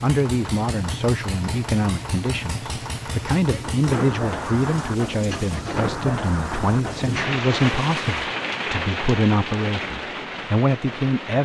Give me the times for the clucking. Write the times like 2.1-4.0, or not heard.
not heard.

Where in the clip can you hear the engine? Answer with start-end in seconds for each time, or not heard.
0.0-8.2.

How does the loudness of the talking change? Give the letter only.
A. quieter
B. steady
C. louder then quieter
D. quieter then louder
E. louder
B.